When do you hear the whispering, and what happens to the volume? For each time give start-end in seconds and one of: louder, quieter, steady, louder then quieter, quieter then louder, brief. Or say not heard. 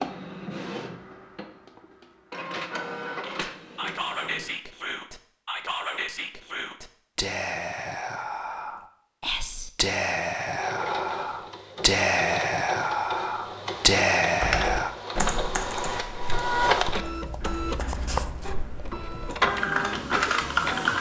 3.2-14.9 louder.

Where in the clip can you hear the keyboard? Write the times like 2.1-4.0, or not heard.
14.4-20.9.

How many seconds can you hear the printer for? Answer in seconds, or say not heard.
15 s.